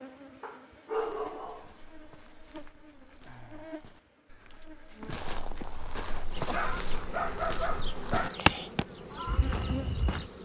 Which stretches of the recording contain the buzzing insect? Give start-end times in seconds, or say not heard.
0.0-10.4.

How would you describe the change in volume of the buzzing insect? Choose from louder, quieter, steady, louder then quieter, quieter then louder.
louder.